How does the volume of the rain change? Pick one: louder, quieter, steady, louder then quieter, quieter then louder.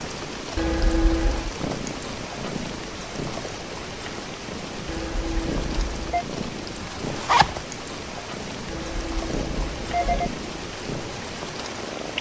steady.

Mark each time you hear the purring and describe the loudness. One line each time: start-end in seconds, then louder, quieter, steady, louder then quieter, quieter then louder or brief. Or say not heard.
0.0-12.1 steady.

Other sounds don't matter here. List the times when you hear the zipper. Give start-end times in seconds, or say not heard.
6.8-7.6.